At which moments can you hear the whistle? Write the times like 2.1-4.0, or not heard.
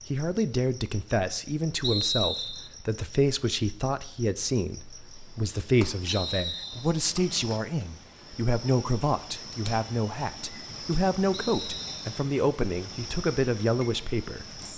1.8-2.7, 6.0-7.0, 11.3-12.1.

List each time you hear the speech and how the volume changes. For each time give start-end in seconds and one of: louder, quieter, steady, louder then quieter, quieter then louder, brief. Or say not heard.
0.1-14.6 steady.